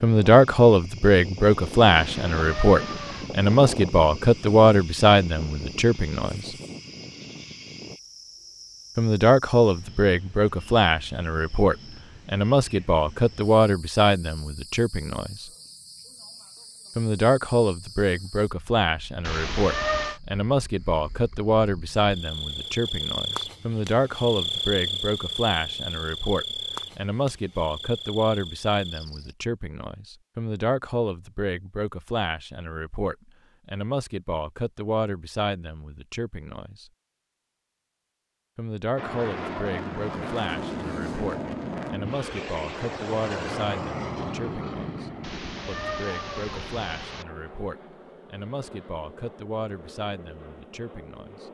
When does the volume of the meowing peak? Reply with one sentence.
The loudest moment of the meowing is at 20 seconds.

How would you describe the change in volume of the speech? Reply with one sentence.
The volume of the speech goes down.